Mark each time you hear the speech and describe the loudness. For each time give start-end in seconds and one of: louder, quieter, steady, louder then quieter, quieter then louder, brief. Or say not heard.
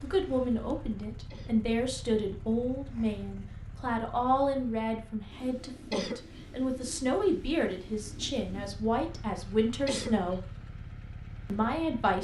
0.0-10.4 steady
11.4-12.1 brief.